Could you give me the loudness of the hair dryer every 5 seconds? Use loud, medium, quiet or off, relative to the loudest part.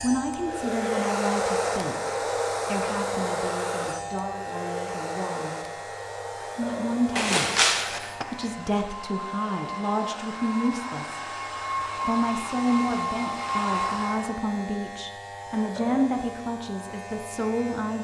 loud, medium, loud, off.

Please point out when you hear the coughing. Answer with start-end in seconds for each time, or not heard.
not heard.